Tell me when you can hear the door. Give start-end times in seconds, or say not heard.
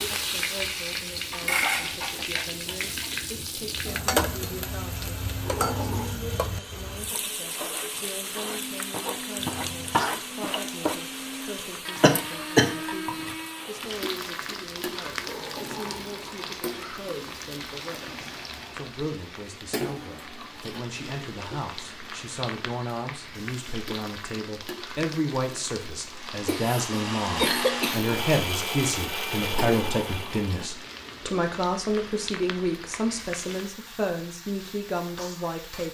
5.4-6.2, 15.2-16.6, 29.2-30.5.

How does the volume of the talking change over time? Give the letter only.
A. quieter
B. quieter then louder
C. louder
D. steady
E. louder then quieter
C.